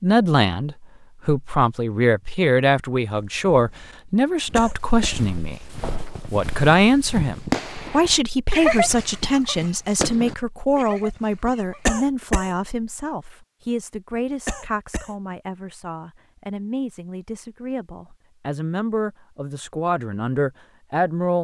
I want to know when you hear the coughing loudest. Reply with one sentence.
The loudest moment of the coughing is at 12 seconds.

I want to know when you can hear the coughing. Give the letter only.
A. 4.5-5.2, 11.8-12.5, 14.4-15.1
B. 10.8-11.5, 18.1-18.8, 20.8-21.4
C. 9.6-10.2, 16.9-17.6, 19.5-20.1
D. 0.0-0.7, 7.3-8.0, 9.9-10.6
A.